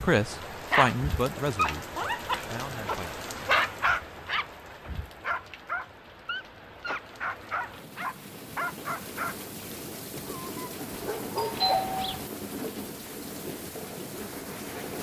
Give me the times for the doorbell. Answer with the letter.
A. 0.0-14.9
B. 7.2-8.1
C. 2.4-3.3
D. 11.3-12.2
D.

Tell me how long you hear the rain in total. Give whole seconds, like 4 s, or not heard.
15 s.